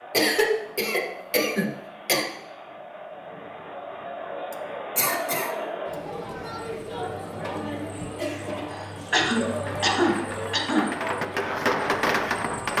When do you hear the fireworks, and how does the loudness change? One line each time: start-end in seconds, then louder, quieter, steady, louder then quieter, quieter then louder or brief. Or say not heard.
8.2-12.7 louder.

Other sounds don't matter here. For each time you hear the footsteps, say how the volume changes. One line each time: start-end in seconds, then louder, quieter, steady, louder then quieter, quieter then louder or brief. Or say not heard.
not heard.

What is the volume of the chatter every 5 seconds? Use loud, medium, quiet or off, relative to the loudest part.
medium, loud, loud.